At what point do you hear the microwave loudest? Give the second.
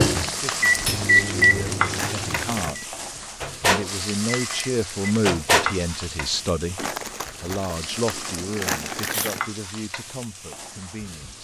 1 s.